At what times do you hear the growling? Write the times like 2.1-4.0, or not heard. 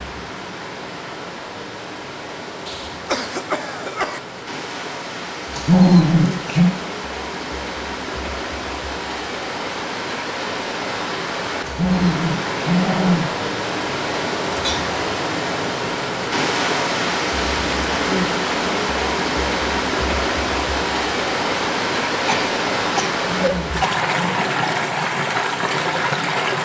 5.5-6.8, 11.7-13.3, 23.2-24.6.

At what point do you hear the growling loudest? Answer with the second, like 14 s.
6 s.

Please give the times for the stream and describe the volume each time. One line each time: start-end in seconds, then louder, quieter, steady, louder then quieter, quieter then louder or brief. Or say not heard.
0.0-26.6 louder.